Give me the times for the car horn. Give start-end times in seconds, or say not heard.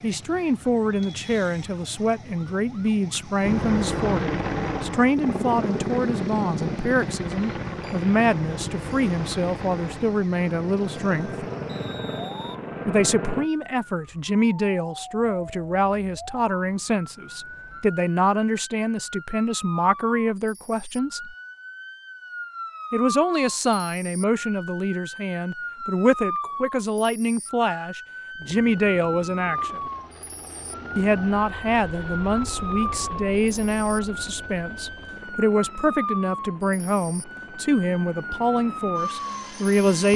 not heard.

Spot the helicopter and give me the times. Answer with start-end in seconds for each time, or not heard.
3.4-13.5, 28.4-40.1.